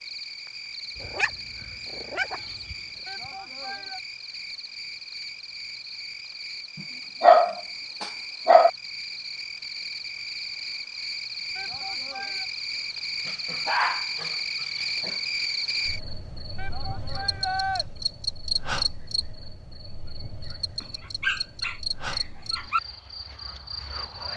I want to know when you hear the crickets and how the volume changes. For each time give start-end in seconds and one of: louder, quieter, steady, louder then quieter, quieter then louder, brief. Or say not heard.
0.0-24.3 louder then quieter.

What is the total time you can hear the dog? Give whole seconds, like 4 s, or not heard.
7 s.